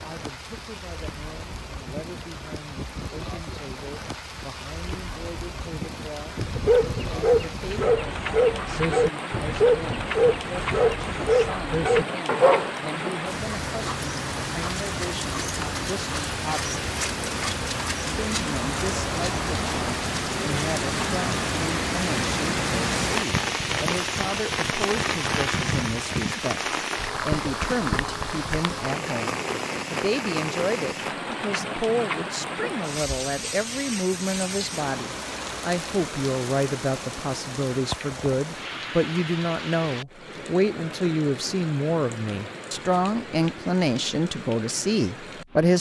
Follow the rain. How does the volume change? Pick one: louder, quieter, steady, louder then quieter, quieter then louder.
louder then quieter.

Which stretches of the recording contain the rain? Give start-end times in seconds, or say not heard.
0.0-45.7.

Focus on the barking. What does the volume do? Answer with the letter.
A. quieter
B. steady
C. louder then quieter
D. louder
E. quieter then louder
B.